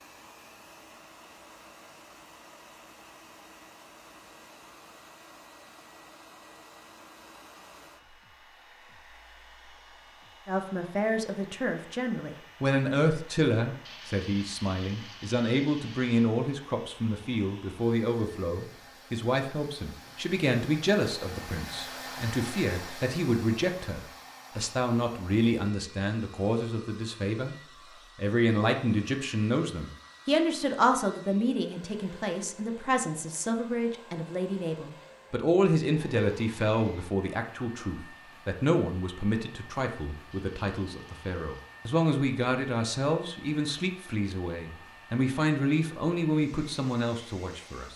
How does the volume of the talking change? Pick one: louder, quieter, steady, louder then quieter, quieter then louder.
steady.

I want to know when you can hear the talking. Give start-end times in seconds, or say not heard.
10.4-27.6, 28.1-47.9.